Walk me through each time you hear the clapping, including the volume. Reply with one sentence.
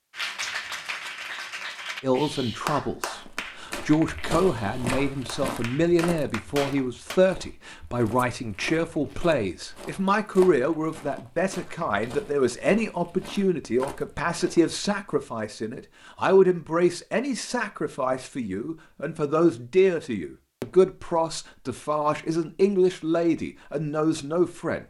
The clapping can be heard from 0.1 to 7.2 s, getting quieter then louder.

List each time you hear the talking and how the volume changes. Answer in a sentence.
The talking can be heard from 2.0 to 24.8 s, at a steady volume.